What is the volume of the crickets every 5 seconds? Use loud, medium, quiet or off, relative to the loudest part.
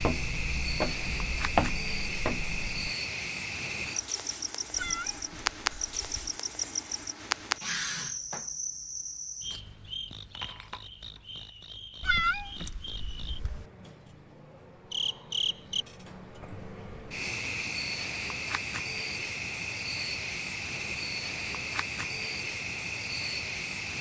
loud, loud, medium, loud, loud.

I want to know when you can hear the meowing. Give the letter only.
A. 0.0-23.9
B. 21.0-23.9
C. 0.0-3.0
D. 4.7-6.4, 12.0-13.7
D.